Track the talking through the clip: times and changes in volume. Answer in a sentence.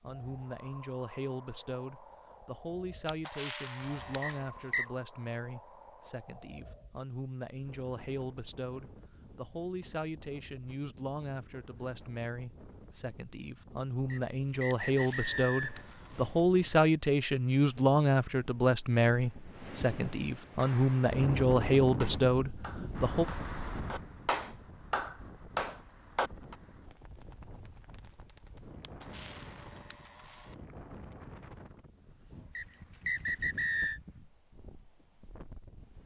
You can hear the talking from 0.0 to 23.2 s, getting louder.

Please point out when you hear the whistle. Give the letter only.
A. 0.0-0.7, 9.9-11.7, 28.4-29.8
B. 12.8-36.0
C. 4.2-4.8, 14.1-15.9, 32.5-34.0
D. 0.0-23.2
C.